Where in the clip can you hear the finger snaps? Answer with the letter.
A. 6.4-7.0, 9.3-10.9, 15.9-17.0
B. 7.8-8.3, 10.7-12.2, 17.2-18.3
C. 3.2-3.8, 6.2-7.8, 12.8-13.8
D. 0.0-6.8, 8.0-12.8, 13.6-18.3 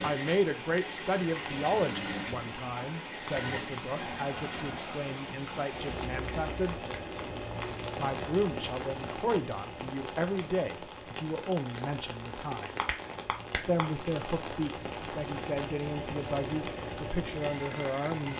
C.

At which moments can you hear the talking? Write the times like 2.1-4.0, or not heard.
0.0-6.8, 8.0-12.8, 13.6-18.3.